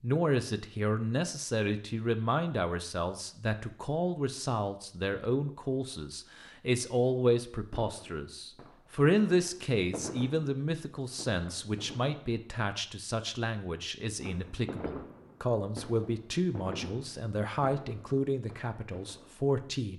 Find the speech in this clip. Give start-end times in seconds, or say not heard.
0.0-19.9.